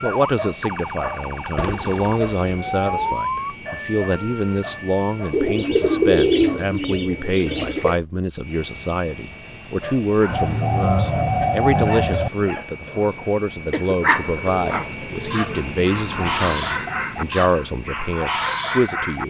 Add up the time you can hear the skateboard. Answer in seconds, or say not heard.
not heard.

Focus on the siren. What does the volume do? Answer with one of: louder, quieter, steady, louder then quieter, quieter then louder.
louder then quieter.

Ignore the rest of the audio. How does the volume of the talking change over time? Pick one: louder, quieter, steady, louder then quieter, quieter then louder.
steady.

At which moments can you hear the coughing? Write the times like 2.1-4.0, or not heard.
13.7-14.3.